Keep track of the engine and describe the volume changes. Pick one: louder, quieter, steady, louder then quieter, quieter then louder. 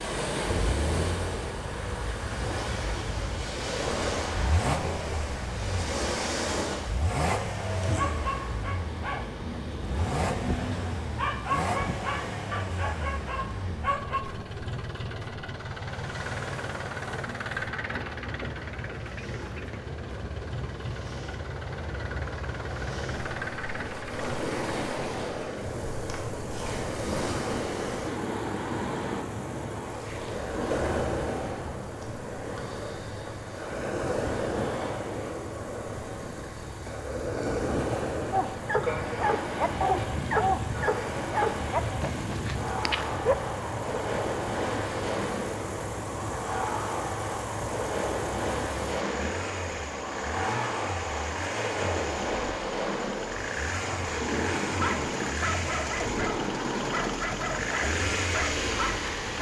quieter then louder.